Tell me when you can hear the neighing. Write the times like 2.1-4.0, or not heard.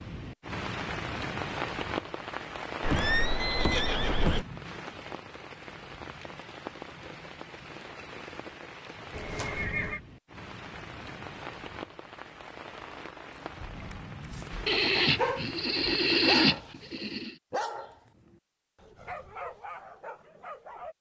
2.8-4.5, 9.1-10.0, 14.7-17.4.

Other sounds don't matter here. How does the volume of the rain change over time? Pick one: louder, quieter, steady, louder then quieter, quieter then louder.
quieter.